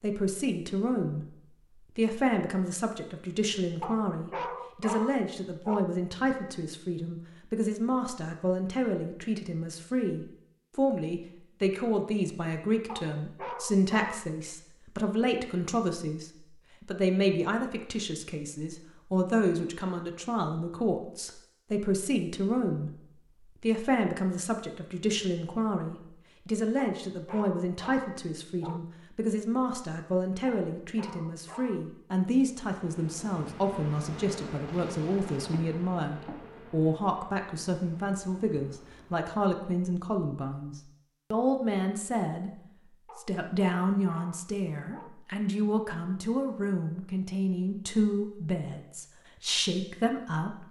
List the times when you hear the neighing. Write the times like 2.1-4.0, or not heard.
not heard.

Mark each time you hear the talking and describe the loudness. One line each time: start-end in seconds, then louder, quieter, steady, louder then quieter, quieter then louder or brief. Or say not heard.
0.0-1.4 brief
1.9-23.0 steady
23.6-50.6 steady.